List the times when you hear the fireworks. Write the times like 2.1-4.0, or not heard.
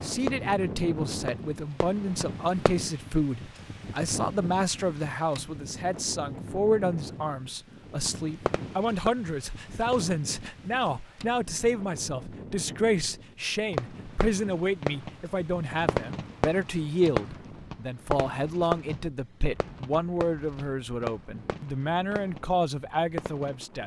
0.0-2.8, 8.1-10.2, 13.7-23.6.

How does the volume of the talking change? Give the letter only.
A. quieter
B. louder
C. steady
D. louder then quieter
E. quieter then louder
C.